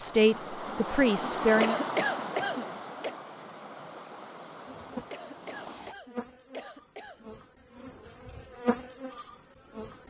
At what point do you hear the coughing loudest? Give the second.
2 s.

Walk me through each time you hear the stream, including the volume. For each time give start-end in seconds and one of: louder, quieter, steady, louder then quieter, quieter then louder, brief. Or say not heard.
0.0-6.0 quieter.